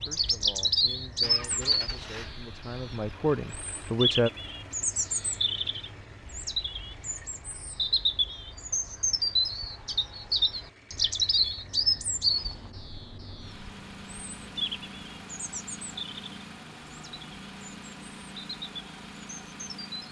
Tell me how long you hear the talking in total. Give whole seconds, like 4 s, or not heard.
4 s.